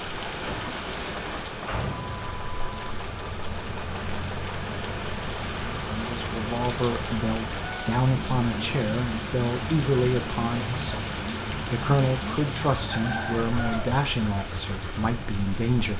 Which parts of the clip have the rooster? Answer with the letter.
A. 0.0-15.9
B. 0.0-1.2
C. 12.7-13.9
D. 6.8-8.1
C.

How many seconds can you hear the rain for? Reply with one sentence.
You can hear the rain for 16 seconds altogether.